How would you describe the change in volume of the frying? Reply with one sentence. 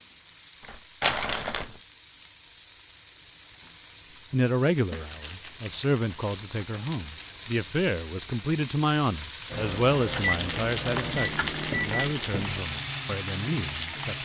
The volume of the frying goes up.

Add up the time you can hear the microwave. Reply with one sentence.
The microwave can be heard for 3 seconds in total.